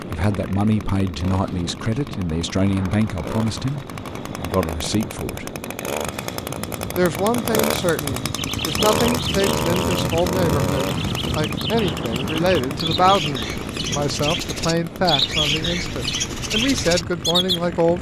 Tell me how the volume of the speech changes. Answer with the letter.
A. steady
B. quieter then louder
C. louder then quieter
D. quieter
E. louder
A.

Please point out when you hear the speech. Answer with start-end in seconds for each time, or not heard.
0.0-5.5, 7.0-17.9.